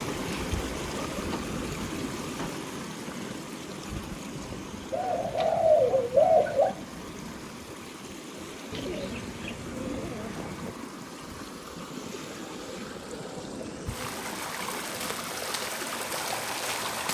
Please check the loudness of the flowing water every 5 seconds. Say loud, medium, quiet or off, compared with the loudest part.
loud, medium, medium, loud.